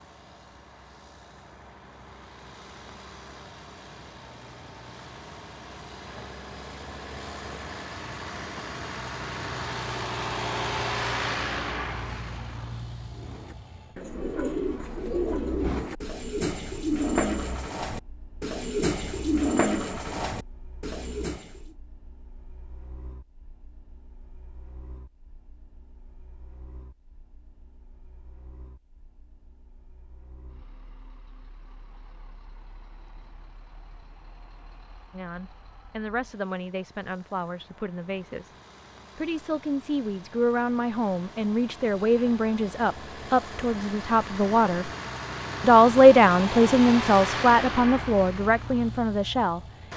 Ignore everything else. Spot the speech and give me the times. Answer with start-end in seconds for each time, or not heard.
35.1-38.5, 39.1-44.9, 45.6-49.6.